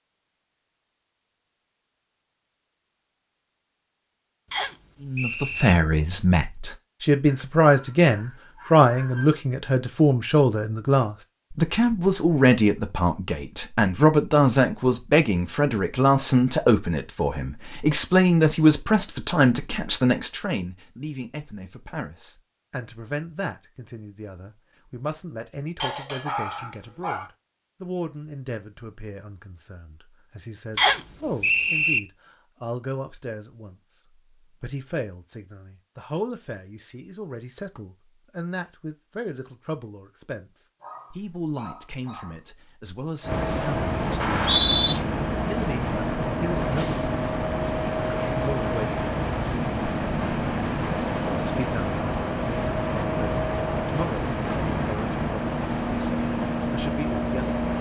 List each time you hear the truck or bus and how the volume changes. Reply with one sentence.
You can hear the truck or bus from 43.2 to 57.7 s, at a steady volume.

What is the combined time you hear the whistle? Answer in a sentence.
You can hear the whistle for 3 seconds altogether.